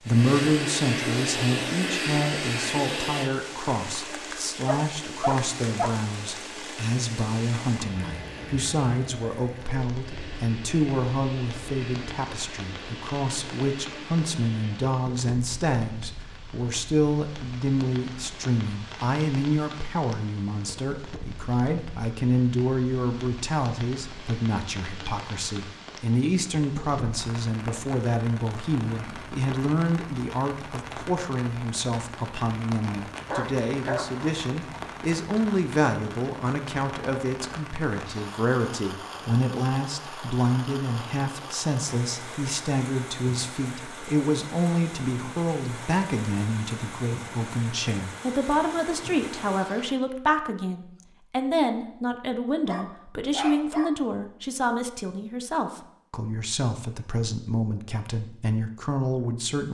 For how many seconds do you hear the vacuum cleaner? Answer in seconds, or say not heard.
15 s.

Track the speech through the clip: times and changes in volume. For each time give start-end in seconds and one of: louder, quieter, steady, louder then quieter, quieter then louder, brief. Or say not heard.
0.0-59.6 steady.